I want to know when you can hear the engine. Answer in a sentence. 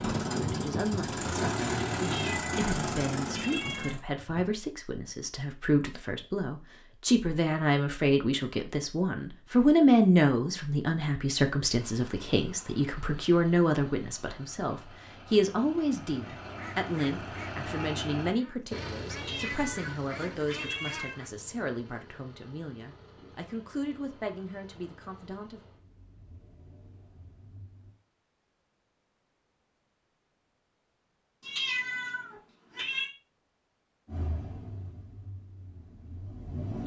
The engine can be heard from 0.0 to 4.5 s, from 11.7 to 28.0 s and from 34.0 to 36.8 s.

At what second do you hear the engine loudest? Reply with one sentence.
The loudest moment of the engine is at 2 seconds.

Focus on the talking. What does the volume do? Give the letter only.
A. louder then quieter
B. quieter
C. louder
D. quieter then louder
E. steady
A.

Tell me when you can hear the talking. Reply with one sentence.
The talking can be heard from 0.1 to 25.6 s.